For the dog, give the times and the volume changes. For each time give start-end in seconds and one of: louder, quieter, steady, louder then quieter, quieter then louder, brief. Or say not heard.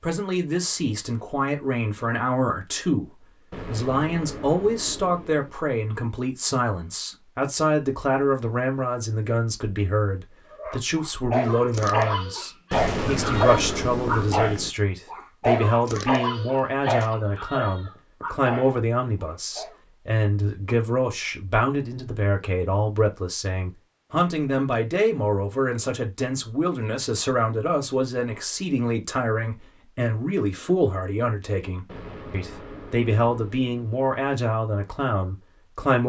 10.6-19.8 quieter.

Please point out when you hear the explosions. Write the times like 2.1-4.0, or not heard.
3.5-5.5, 12.7-14.7, 31.9-33.9.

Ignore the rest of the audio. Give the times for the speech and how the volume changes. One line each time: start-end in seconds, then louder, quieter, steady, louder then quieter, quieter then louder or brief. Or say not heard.
0.0-36.0 steady.